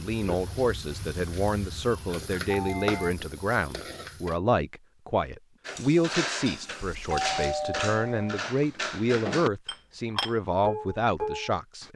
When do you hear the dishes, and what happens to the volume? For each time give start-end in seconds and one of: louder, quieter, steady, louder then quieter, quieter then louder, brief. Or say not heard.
5.7-11.9 steady.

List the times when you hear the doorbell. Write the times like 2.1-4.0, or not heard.
2.5-3.1, 6.8-8.4.